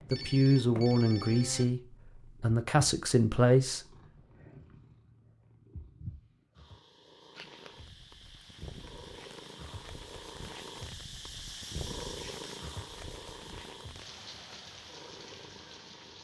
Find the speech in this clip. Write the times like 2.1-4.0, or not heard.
0.1-3.9.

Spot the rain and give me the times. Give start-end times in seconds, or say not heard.
7.3-16.1.